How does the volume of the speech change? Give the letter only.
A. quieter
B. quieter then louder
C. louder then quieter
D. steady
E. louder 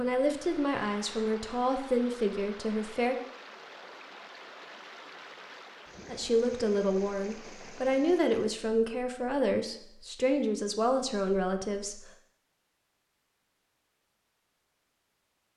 D.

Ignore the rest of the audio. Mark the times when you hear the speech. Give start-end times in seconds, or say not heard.
0.0-3.1, 6.0-12.0.